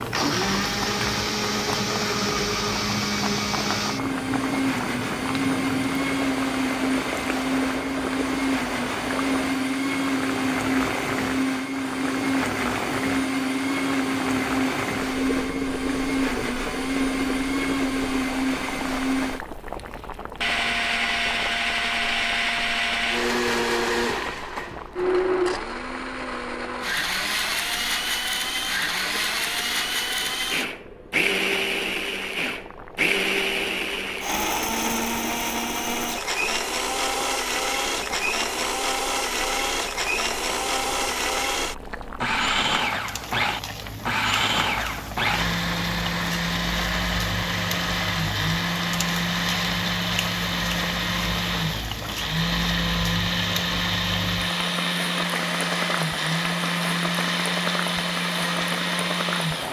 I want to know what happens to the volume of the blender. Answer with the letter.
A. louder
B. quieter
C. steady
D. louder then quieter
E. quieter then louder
C.